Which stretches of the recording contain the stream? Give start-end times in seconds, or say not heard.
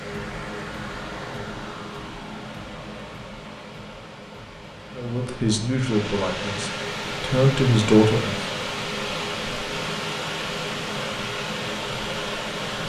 0.0-12.8.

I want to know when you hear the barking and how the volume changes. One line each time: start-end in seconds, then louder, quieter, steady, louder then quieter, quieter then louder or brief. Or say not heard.
not heard.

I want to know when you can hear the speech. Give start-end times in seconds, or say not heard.
5.0-8.4.